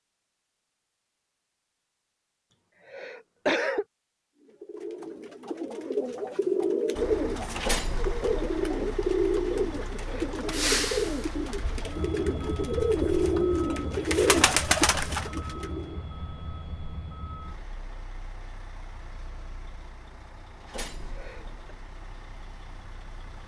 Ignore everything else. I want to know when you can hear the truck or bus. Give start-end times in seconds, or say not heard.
7.0-23.4.